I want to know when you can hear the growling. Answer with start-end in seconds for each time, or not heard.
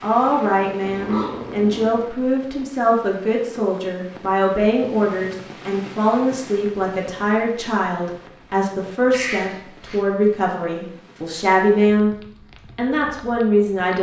0.8-2.0, 9.1-10.1.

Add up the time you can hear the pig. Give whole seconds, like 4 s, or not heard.
not heard.